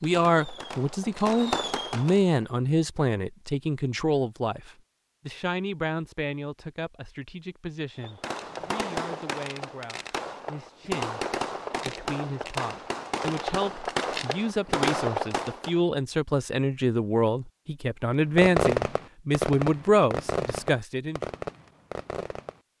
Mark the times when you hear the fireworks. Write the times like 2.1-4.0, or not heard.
0.0-2.4, 8.0-15.8, 18.4-22.6.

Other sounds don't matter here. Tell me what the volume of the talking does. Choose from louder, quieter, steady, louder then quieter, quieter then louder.
quieter then louder.